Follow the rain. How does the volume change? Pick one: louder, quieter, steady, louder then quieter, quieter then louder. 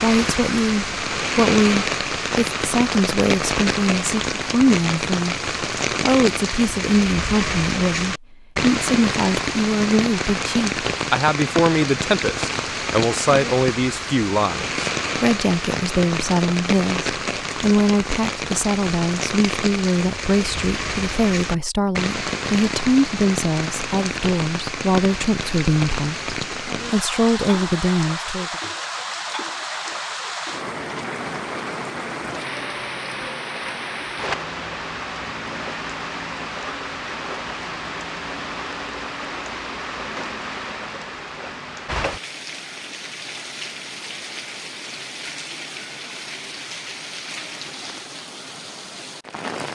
quieter.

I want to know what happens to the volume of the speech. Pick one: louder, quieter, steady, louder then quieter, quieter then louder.
steady.